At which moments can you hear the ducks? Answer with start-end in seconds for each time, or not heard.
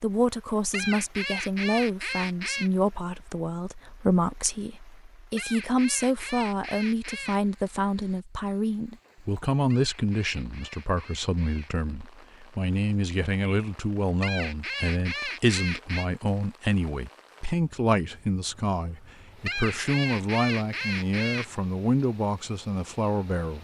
0.7-2.7, 5.3-7.4, 9.7-11.7, 14.2-16.1, 19.4-21.4.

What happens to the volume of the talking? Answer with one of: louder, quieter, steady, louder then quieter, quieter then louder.
steady.